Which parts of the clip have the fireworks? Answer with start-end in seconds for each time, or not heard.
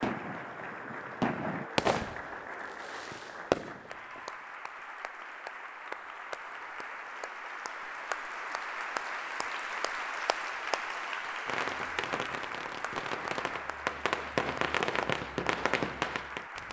0.0-4.2, 11.4-16.6.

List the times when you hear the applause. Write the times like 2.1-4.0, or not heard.
0.0-16.6.